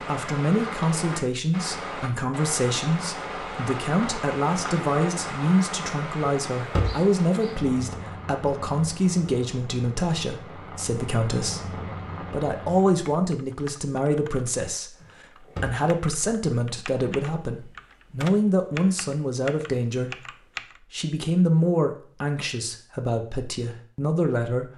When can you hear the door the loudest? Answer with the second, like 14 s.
7 s.